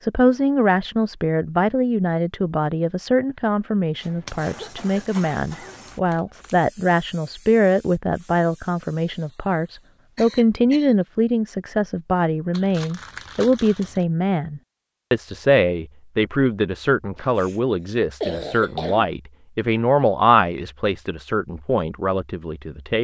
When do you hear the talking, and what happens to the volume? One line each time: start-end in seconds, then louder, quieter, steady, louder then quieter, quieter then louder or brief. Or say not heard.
0.0-22.9 steady.